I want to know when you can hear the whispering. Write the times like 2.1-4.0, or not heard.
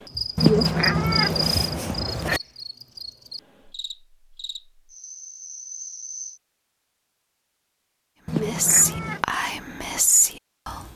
8.4-10.9.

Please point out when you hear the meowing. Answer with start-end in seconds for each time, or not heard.
0.3-2.4, 8.2-9.2.